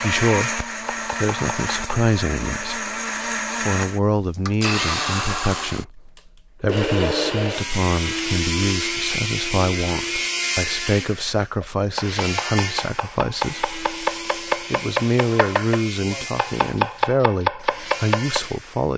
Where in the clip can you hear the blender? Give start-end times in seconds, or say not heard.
0.0-18.9.